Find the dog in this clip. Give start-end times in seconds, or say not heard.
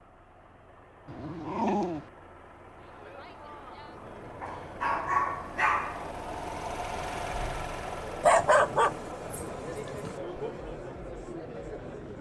1.1-2.1, 4.4-6.0, 8.2-10.1.